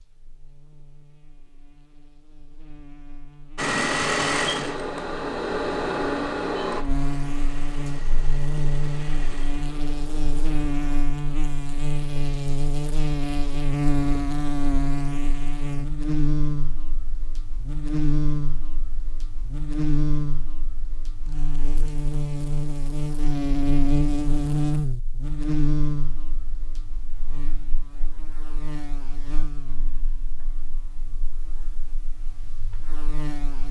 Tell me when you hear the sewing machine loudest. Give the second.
4 s.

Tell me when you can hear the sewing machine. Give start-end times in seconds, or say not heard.
3.5-11.0.